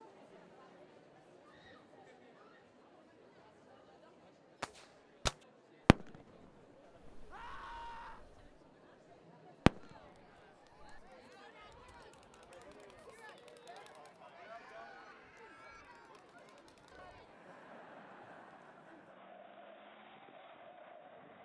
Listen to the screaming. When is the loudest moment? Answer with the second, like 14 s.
8 s.